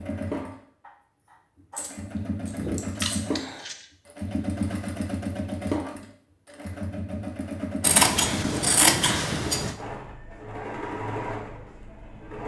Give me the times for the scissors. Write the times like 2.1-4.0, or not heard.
3.0-3.9, 7.8-9.8.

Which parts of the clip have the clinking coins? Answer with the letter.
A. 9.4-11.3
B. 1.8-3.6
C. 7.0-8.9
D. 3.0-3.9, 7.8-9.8
B.